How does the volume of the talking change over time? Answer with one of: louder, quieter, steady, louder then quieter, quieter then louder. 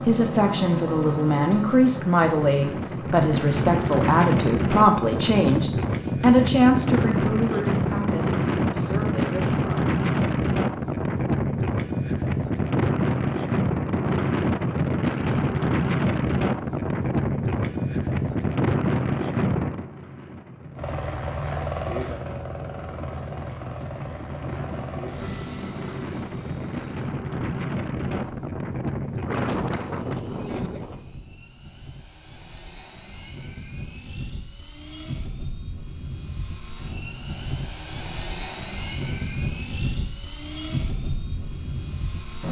quieter.